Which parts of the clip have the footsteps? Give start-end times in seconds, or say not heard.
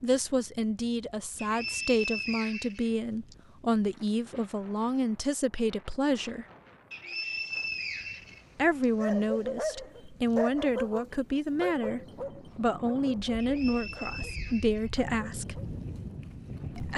not heard.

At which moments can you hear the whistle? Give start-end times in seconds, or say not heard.
1.4-3.4, 6.9-8.8, 13.3-15.3.